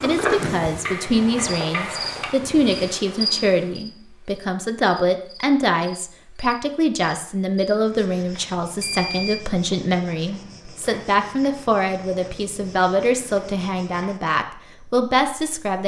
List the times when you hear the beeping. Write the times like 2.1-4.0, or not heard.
8.8-9.4.